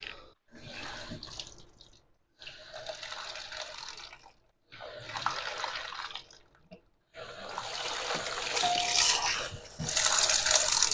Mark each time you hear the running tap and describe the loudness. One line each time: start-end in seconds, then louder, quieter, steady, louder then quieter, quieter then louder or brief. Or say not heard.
0.0-10.8 louder.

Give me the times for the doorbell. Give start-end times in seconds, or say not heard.
7.8-9.1.